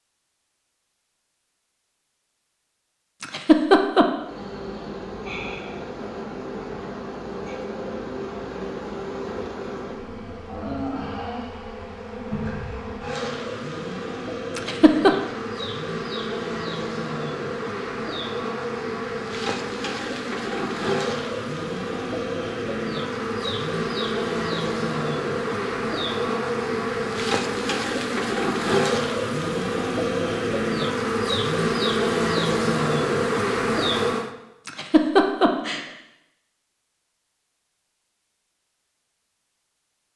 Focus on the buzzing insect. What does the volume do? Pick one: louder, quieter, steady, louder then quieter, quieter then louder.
louder.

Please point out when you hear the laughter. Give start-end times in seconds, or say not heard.
3.2-4.0, 14.6-15.1, 34.6-35.9.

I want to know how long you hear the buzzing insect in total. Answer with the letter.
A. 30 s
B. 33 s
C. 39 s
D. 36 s
A.